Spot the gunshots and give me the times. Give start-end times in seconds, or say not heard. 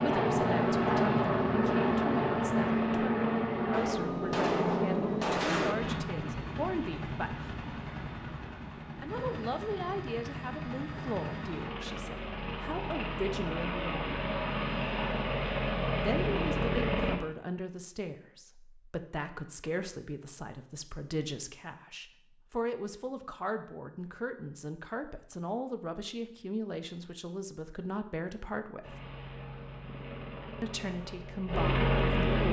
3.7-5.8.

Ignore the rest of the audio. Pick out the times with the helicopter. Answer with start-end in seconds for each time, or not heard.
0.0-17.1, 28.8-32.4.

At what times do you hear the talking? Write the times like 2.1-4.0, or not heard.
0.0-7.5, 8.9-14.1, 16.0-28.9, 30.6-32.4.